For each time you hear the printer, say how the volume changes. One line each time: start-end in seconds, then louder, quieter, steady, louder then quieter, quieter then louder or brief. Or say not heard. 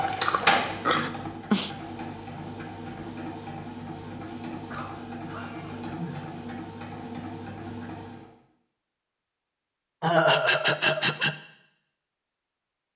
0.0-8.3 quieter.